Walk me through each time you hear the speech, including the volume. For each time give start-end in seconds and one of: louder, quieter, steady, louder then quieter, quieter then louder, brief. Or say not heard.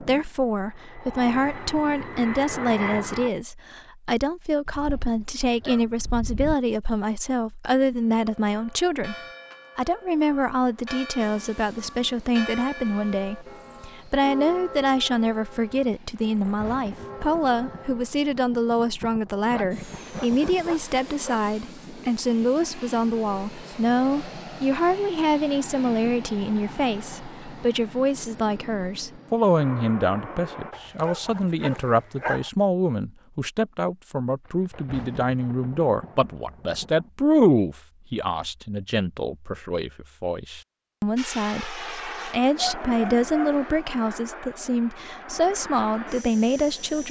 0.0-9.2 steady
9.8-47.0 steady.